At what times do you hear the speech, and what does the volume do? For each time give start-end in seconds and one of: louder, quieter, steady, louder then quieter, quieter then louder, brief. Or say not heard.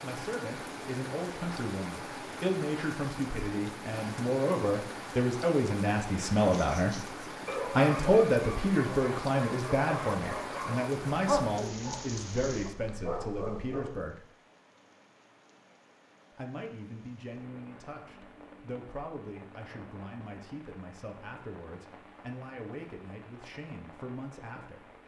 0.0-14.2 louder then quieter
16.4-24.9 steady.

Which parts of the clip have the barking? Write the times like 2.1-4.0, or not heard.
6.4-14.1.